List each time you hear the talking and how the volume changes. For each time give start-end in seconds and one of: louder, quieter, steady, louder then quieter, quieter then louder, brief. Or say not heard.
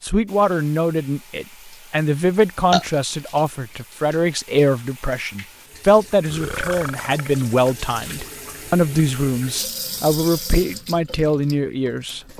0.0-12.2 steady.